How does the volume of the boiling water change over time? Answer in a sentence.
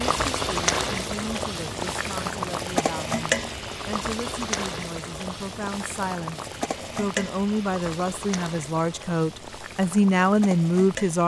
The loudness of the boiling water goes down.